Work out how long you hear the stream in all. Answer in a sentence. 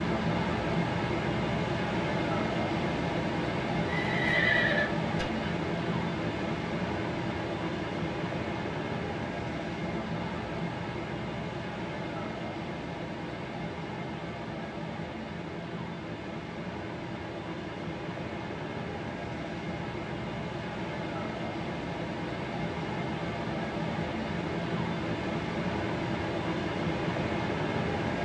You can hear the stream for 28 seconds altogether.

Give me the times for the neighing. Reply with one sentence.
The neighing can be heard from 3.9 to 5.5 s.